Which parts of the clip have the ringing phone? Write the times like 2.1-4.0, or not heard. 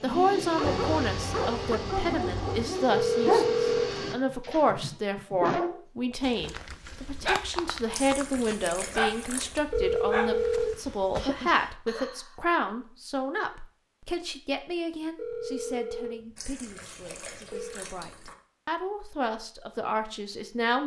2.9-4.0, 9.7-11.3, 15.2-17.8.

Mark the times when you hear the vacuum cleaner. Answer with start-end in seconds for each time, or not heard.
0.0-4.2.